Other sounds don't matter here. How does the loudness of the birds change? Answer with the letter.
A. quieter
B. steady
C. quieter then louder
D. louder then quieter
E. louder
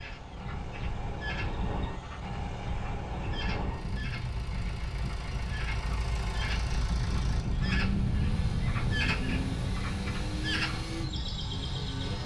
E.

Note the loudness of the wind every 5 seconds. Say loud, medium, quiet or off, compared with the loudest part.
medium, loud, medium.